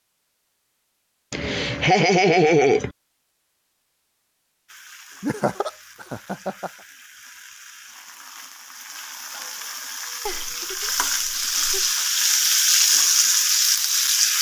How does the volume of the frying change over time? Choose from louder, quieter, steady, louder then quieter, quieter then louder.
louder.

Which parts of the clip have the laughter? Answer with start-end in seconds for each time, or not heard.
1.3-2.9, 5.2-6.7, 10.2-11.9.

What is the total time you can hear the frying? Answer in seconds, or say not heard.
10 s.